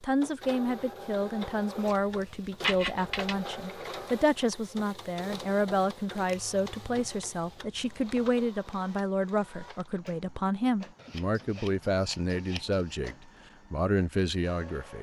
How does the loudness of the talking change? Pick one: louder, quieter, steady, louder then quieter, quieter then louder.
steady.